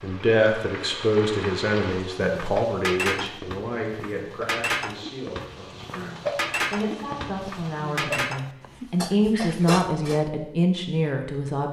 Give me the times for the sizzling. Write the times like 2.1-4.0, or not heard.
0.0-8.2.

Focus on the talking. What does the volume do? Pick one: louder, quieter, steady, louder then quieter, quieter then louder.
quieter then louder.